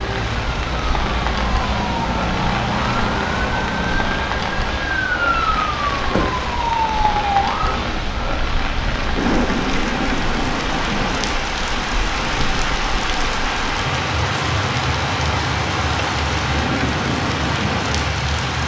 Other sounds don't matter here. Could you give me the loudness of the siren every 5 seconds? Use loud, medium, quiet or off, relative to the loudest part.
loud, loud, medium, medium.